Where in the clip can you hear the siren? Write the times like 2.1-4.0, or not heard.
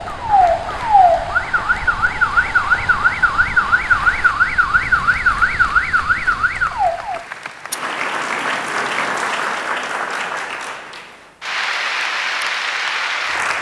0.0-7.2.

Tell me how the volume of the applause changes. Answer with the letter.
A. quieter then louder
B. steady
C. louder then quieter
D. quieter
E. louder
E.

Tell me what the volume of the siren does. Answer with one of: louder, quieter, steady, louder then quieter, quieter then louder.
steady.